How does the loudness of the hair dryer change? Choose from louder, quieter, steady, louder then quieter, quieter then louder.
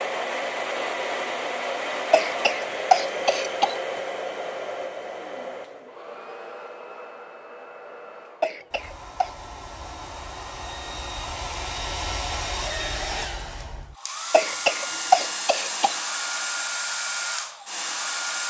quieter then louder.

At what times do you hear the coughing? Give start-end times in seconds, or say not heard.
2.1-3.8, 8.4-9.3, 14.3-16.0.